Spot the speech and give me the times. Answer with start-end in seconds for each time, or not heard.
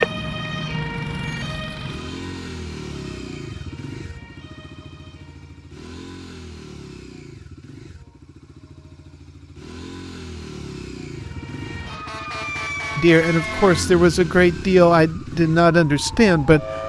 12.9-16.6.